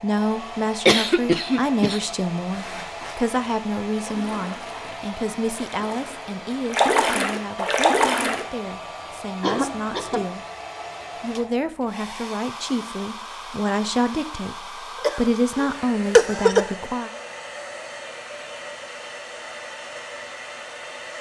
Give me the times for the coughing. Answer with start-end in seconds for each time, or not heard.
0.8-2.0, 9.4-10.3, 15.0-16.7.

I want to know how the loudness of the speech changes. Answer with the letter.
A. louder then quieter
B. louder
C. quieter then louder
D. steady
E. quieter
C.